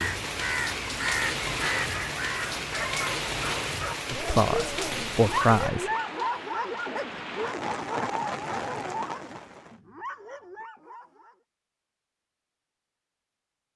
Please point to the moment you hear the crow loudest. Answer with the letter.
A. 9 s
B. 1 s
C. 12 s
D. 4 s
B.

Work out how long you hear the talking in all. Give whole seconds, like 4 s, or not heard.
2 s.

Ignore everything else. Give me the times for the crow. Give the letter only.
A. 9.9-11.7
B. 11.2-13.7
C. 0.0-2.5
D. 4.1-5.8
C.